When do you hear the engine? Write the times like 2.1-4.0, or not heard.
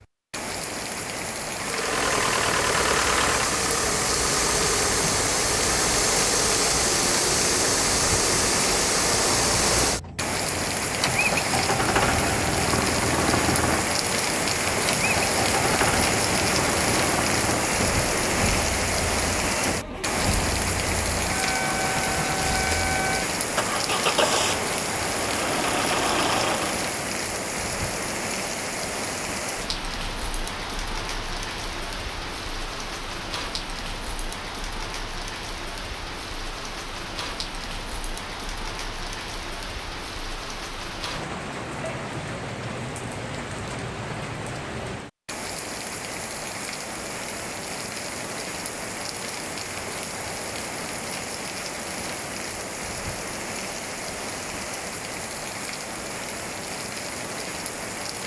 1.6-26.9.